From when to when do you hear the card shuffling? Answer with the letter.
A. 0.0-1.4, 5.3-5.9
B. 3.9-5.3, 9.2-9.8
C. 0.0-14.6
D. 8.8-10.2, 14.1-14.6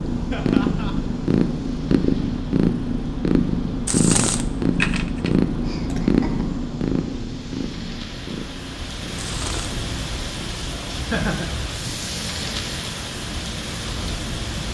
B.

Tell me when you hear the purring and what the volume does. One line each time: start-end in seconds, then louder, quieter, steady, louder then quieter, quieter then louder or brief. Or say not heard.
0.0-14.6 quieter.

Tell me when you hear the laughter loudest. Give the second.
11 s.